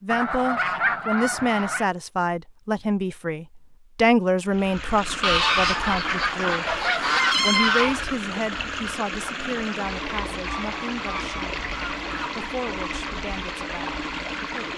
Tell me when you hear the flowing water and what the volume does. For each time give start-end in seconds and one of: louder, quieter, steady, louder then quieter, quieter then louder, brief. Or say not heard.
4.5-14.7 steady.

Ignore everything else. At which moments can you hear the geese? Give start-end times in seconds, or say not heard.
0.1-1.9, 5.2-8.1, 10.4-12.3.